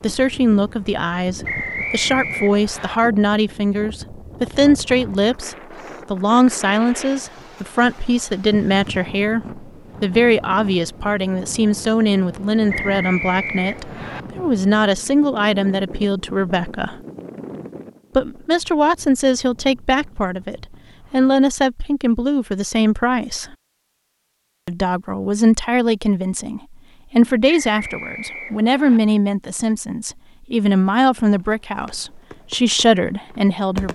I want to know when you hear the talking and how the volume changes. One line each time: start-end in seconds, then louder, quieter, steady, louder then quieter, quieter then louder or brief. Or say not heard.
0.0-16.9 steady
18.1-23.6 steady
24.6-33.9 steady.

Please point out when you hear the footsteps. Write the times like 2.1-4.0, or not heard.
not heard.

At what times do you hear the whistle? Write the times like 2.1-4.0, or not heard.
1.4-3.0, 12.7-14.2, 27.4-29.0.